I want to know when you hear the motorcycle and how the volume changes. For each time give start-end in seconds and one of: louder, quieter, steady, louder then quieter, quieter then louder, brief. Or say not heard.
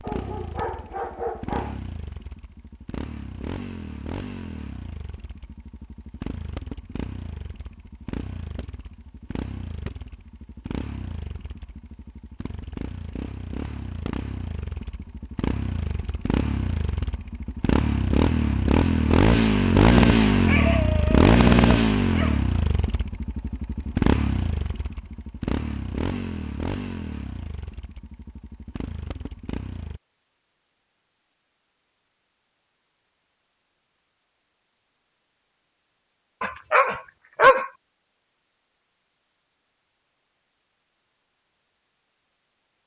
0.0-30.0 louder then quieter.